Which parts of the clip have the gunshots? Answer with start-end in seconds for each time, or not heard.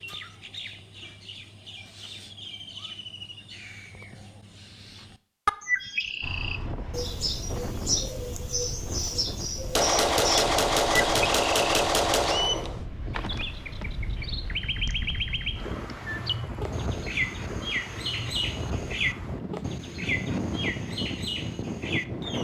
9.8-12.8.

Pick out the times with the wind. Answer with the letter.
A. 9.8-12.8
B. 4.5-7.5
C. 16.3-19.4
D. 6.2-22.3
D.